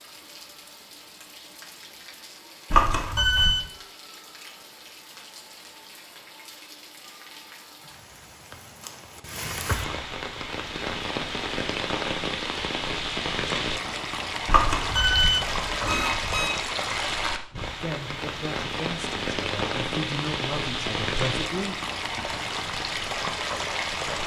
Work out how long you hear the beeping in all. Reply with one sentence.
The beeping can be heard for 3 seconds in total.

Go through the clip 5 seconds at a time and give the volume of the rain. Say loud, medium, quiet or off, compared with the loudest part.
quiet, medium, loud, loud, loud.